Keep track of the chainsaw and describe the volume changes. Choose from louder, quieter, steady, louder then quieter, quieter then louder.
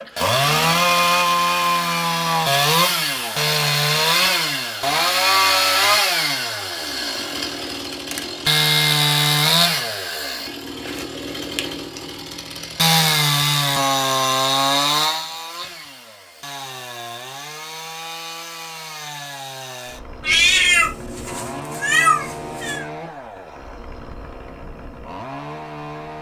quieter.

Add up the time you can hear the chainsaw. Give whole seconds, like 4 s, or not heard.
26 s.